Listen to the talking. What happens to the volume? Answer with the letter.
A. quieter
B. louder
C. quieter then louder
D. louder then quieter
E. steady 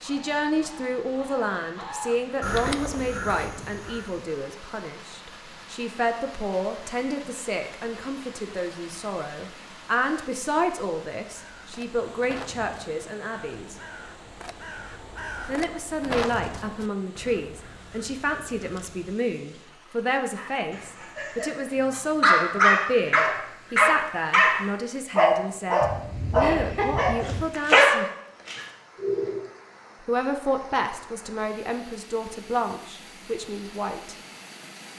E.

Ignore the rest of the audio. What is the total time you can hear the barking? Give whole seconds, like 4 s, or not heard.
9 s.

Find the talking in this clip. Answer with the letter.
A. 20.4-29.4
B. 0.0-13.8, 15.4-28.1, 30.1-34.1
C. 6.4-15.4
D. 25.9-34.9
B.